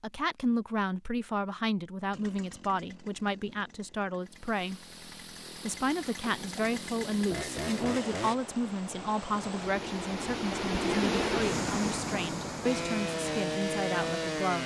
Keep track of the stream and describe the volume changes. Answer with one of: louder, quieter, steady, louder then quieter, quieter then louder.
louder then quieter.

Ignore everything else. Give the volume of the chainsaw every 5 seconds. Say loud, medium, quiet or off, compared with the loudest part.
quiet, medium, loud.